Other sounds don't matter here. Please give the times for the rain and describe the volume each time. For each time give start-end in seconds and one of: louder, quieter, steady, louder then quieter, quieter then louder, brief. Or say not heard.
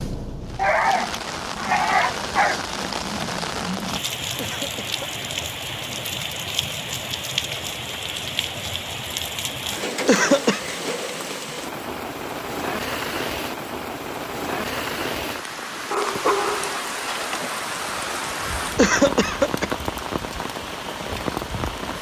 0.0-21.9 steady.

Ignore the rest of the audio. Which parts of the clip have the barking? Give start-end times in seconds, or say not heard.
0.6-2.6, 15.9-17.5.